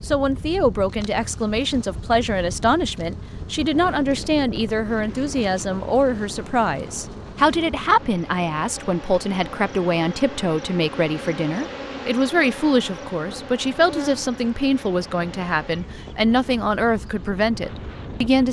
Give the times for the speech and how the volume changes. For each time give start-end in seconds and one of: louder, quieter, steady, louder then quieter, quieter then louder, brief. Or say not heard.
0.1-18.4 steady.